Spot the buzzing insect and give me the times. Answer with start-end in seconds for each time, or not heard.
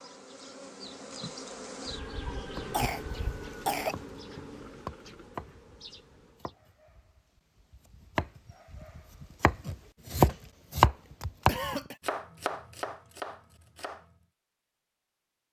0.0-6.5.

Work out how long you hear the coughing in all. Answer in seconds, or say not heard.
2 s.